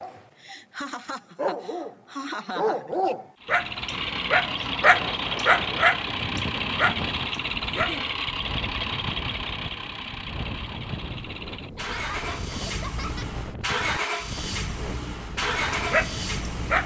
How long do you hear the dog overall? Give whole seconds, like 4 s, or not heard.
9 s.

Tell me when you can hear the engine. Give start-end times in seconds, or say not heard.
3.4-16.8.